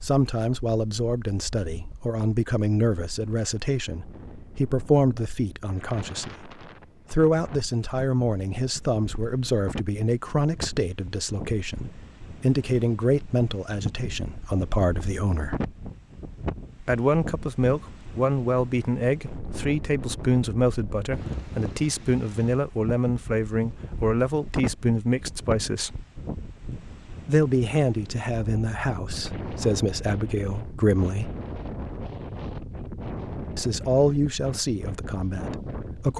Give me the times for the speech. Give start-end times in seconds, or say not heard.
0.0-6.5, 7.1-15.6, 16.8-26.0, 27.2-31.4, 33.5-36.1.